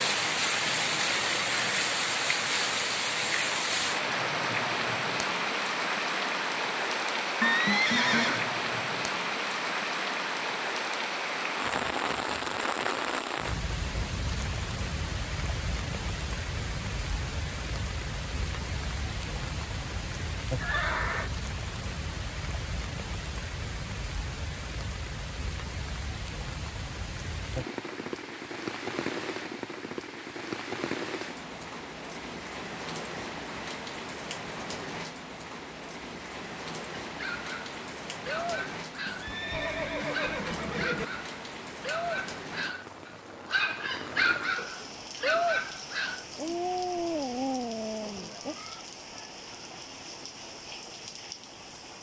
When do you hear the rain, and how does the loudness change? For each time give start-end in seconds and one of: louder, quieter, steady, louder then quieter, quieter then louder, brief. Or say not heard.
0.0-51.9 quieter.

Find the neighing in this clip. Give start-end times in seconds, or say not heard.
7.4-8.4, 20.6-21.3, 39.0-41.0.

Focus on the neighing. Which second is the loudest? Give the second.
8 s.